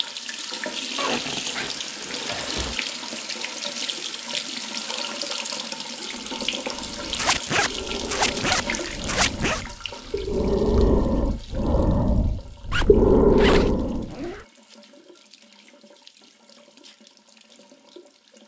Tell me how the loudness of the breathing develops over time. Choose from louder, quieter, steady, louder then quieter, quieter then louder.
louder.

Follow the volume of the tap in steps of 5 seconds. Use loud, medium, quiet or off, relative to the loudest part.
loud, loud, quiet, quiet.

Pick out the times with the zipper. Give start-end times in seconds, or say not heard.
0.9-2.8, 7.1-9.6, 12.7-14.4.